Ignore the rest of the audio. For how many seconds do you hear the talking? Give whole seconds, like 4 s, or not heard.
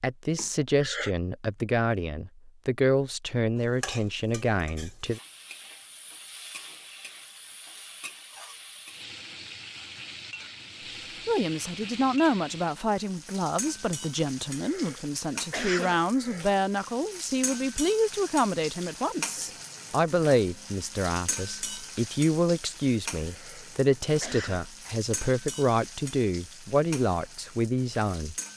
22 s.